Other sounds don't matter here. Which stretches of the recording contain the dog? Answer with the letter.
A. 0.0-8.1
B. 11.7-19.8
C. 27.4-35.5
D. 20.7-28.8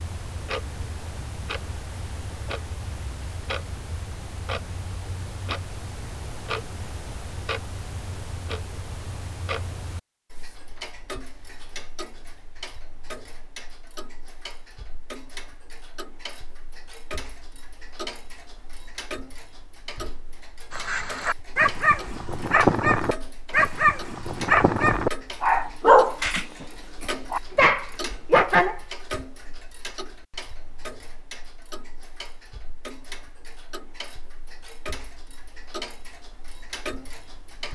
D.